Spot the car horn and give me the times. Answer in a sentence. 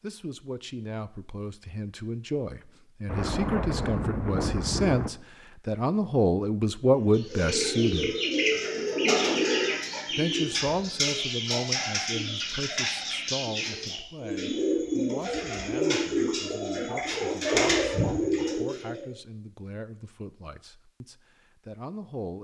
You can't hear the car horn here.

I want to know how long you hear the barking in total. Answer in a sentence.
You can't hear the barking here.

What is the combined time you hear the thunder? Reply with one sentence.
You can hear the thunder for 2 seconds altogether.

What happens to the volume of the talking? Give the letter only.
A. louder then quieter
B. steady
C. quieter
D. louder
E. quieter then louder
A.